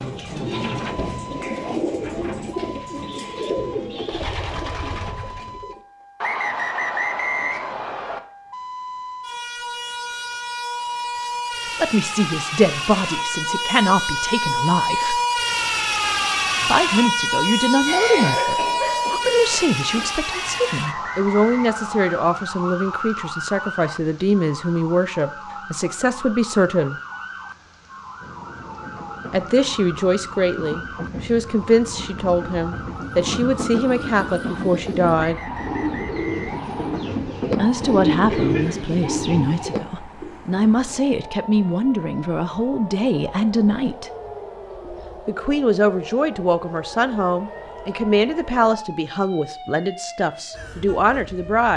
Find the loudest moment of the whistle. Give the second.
7 s.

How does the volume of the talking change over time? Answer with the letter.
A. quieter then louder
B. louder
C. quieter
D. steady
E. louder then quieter
D.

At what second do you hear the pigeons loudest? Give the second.
38 s.